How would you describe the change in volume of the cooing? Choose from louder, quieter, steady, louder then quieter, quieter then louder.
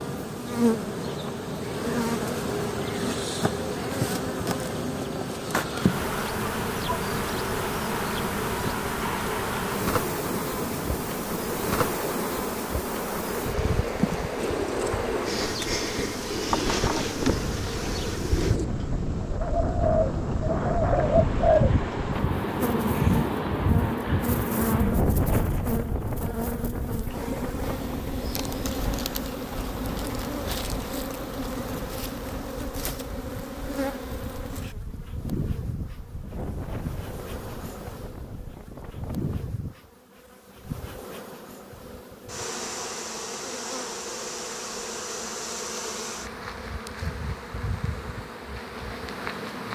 louder.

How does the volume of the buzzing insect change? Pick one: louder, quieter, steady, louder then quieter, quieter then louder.
quieter.